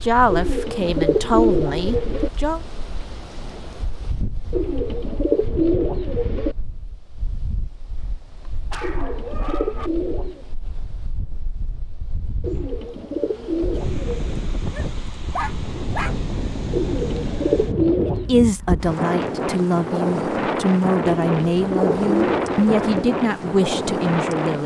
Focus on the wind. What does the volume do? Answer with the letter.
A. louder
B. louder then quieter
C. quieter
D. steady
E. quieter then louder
A.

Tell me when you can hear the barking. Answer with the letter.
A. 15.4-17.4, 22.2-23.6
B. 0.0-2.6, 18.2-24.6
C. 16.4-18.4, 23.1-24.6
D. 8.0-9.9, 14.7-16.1
D.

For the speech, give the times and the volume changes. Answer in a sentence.
You can hear the speech briefly from 0.0 to 2.6 s; and from 18.2 to 24.6 s, at a steady volume.